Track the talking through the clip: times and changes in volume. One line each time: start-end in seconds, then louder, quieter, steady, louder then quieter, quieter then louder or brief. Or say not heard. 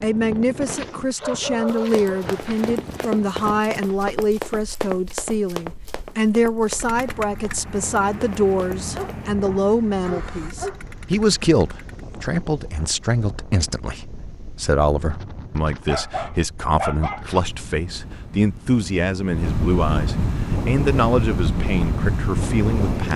0.0-23.1 steady.